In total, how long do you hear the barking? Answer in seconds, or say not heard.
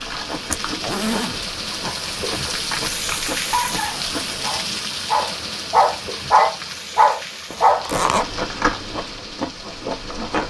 5 s.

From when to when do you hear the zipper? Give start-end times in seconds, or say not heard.
0.5-1.6, 7.5-8.2.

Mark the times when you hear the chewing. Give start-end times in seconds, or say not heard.
0.0-4.5, 7.9-10.4.